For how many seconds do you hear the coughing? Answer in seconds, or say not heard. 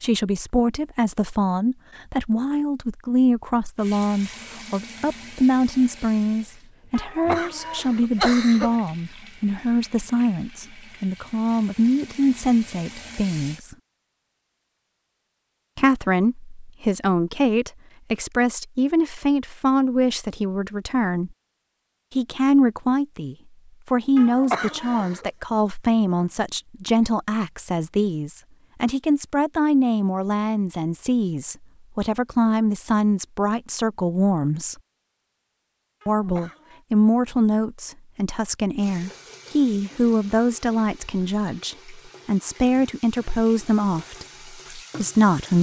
4 s.